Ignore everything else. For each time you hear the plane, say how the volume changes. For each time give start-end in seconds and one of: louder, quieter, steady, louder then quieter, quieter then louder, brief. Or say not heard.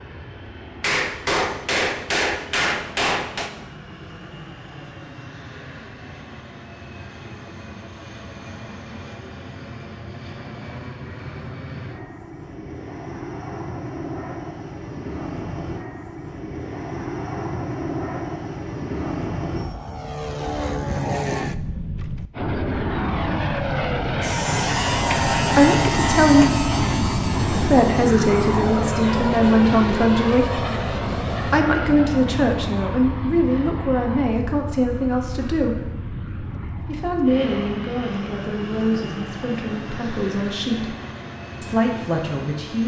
0.0-42.8 louder then quieter.